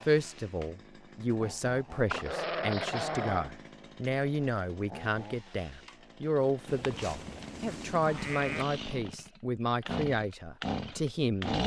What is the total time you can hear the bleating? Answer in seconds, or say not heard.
2 s.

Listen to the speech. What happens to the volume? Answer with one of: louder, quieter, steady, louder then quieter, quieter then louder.
steady.